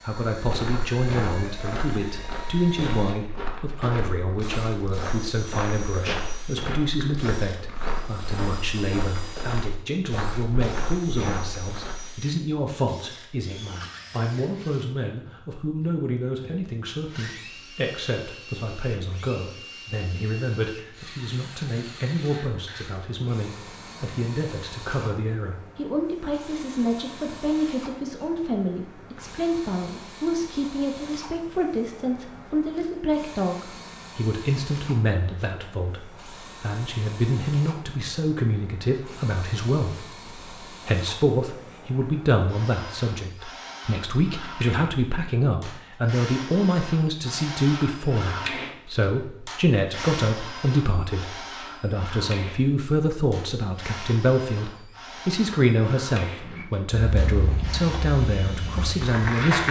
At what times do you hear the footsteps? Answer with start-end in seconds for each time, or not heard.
0.3-12.2, 56.4-59.6.